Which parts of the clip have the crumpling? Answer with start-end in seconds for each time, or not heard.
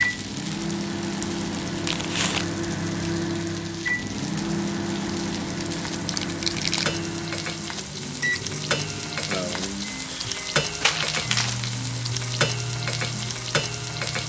1.9-2.5, 6.0-7.0, 10.8-11.8.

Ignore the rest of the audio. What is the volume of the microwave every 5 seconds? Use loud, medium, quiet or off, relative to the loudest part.
loud, loud, medium.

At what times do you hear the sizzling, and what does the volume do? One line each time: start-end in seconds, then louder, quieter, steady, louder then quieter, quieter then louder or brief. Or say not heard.
0.0-14.2 louder.